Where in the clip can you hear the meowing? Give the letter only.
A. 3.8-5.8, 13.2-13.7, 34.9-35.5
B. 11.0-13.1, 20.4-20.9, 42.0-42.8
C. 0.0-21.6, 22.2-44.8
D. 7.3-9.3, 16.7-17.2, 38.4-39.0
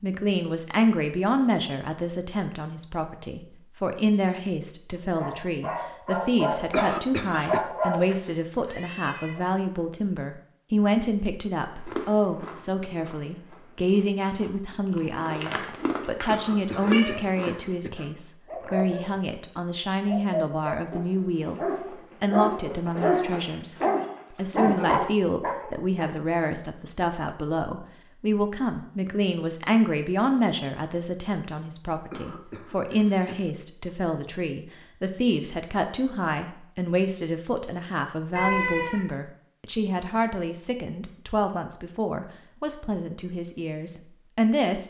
D.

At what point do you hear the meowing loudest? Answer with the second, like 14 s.
39 s.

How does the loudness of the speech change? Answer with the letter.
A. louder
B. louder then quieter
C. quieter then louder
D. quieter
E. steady
E.